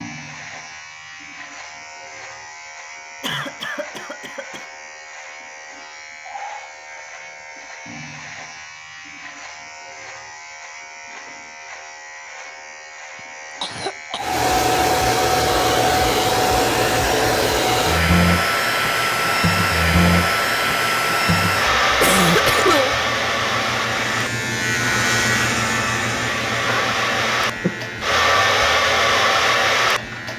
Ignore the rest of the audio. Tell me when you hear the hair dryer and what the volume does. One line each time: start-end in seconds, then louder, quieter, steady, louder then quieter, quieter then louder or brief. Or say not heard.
14.2-30.3 quieter then louder.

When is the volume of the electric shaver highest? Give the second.
25 s.